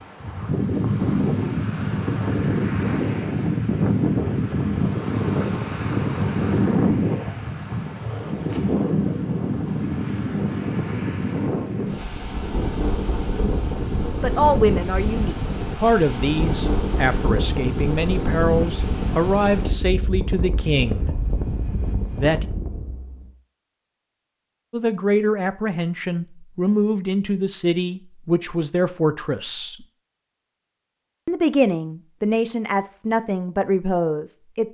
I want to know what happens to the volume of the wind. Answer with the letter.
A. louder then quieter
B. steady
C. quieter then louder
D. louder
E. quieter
E.